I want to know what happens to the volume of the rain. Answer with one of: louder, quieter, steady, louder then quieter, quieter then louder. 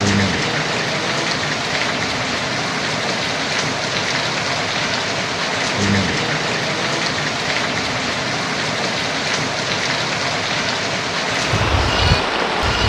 steady.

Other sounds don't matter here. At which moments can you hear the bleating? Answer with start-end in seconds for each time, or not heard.
11.3-12.8.